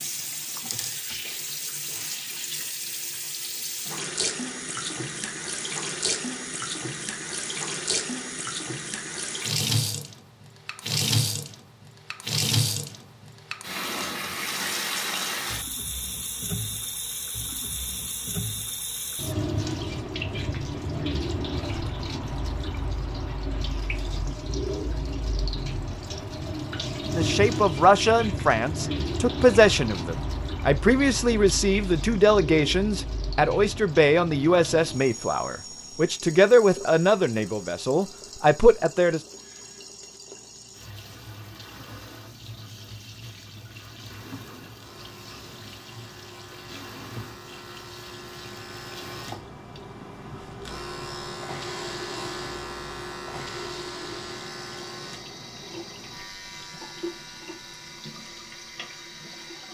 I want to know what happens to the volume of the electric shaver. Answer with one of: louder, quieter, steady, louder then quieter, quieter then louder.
louder then quieter.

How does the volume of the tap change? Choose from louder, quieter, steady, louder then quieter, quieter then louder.
quieter.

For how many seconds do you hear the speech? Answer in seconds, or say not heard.
12 s.